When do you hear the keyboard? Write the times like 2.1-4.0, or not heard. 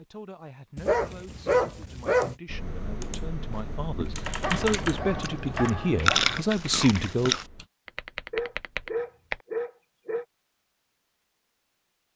2.5-9.4.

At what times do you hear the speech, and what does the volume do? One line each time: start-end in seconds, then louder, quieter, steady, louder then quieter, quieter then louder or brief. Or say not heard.
0.0-7.3 louder.